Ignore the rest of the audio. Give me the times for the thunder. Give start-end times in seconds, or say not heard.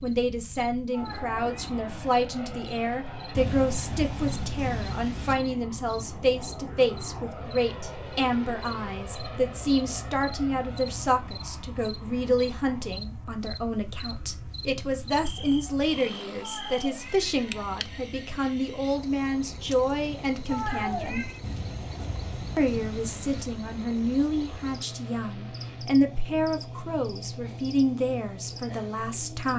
3.4-5.3, 21.4-23.4.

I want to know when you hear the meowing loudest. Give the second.
21 s.